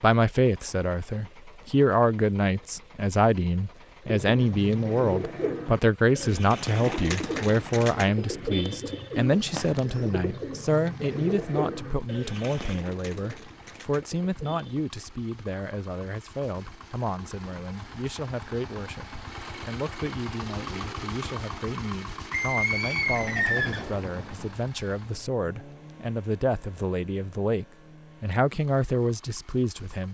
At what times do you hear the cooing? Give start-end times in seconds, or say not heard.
4.0-14.8.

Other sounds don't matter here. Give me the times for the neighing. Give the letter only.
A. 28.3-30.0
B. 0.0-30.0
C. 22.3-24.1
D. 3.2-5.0
C.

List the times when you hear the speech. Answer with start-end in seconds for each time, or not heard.
0.0-30.0.